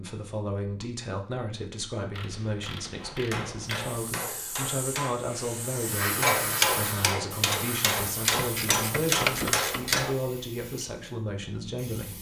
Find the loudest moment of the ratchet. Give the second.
9 s.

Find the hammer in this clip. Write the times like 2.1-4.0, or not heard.
3.0-10.2.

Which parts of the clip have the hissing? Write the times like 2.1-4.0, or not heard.
3.8-12.1.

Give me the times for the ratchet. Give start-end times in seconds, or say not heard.
2.1-4.2, 8.2-10.0.